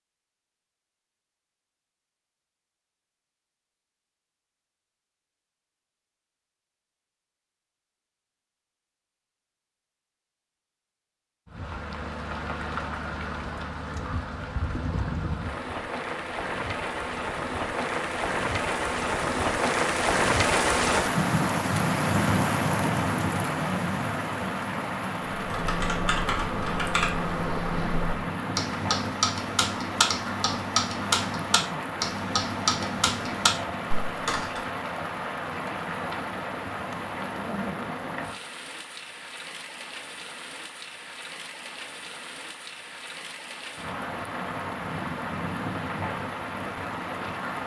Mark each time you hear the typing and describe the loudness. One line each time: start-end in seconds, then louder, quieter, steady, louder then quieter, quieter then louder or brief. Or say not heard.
25.4-34.6 steady.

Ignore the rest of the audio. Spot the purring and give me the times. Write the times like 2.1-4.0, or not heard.
not heard.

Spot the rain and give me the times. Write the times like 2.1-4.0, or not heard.
11.4-47.6.